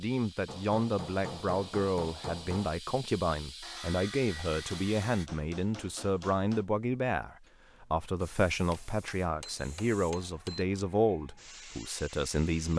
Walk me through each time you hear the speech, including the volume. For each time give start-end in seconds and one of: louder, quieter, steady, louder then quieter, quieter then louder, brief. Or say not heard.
0.0-12.7 steady.